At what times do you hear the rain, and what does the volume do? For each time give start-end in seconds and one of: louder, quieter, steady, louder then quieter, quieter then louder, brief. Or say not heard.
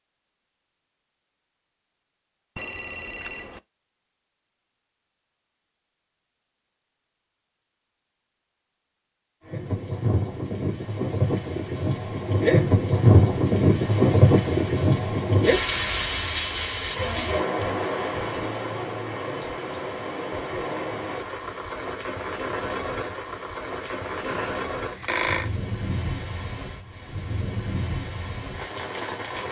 9.4-29.4 quieter.